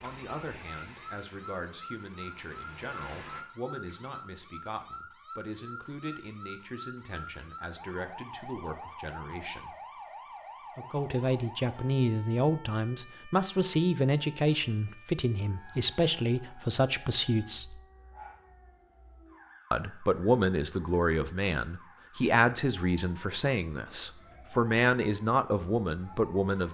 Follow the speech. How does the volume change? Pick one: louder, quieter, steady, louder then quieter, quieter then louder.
louder.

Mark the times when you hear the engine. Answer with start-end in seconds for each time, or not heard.
0.0-3.5.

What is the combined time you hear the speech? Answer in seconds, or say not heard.
24 s.